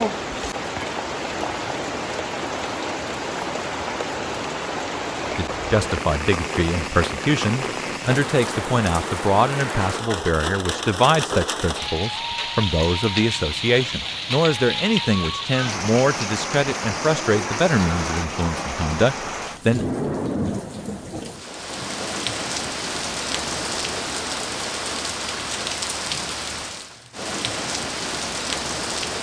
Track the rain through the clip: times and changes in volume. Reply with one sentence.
The rain can be heard from 0.0 to 29.1 s, at a steady volume.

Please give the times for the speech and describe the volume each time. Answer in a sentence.
The speech can be heard from 5.3 to 19.9 s, at a steady volume.